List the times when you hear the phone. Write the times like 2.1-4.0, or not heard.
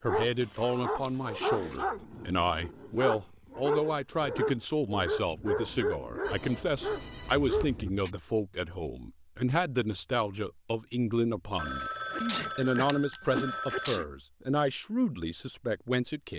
0.4-1.9, 6.2-7.8, 11.6-13.9.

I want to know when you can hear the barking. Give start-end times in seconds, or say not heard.
0.1-7.9.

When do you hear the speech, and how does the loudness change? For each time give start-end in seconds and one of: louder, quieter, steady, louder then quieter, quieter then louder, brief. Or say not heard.
0.0-16.3 steady.